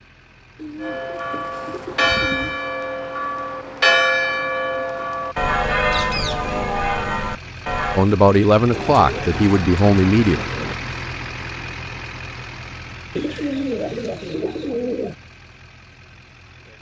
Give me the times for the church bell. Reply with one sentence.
You can hear the church bell from 0.8 to 8.1 s.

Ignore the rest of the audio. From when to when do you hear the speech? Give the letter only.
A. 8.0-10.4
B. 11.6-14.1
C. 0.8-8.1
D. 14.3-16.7
A.